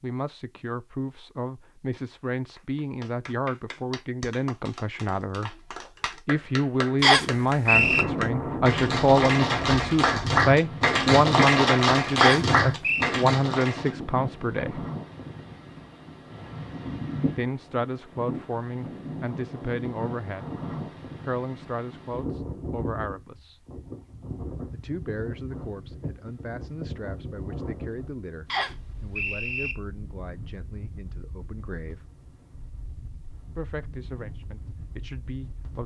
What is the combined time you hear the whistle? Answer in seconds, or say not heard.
3 s.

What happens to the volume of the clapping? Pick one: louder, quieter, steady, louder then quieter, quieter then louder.
louder.